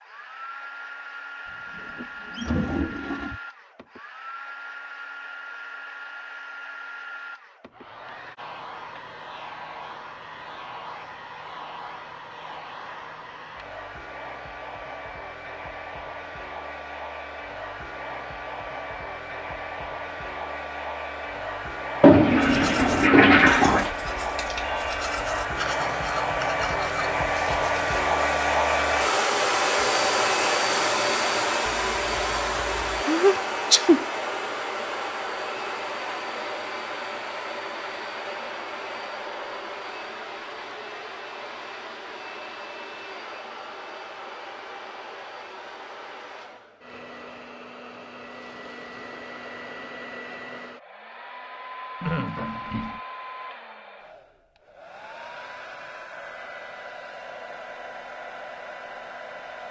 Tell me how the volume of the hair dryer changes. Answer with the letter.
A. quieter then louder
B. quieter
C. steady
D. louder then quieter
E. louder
D.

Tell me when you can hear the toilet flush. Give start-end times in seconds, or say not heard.
1.8-3.4, 22.0-23.9, 52.0-53.0.